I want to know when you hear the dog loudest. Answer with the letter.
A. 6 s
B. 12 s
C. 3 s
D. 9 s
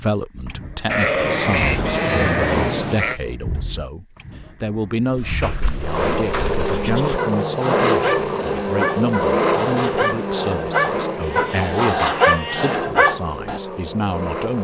B.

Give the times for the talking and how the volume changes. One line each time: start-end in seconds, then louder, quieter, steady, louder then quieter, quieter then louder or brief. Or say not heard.
0.0-14.5 steady.